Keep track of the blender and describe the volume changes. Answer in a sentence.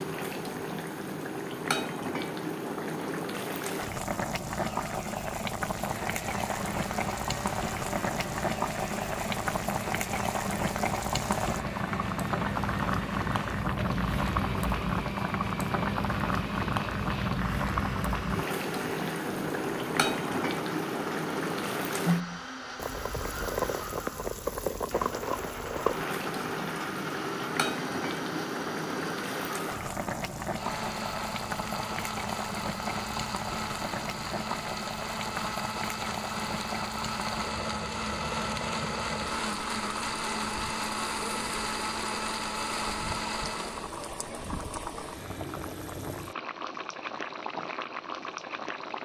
The loudness of the blender goes up.